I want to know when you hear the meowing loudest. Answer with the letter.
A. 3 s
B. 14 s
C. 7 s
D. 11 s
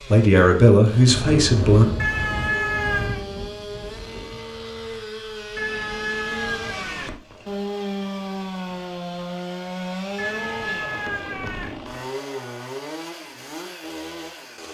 A.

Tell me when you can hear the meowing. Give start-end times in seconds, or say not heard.
1.9-3.2, 5.5-7.2, 10.2-11.8.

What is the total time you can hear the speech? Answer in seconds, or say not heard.
2 s.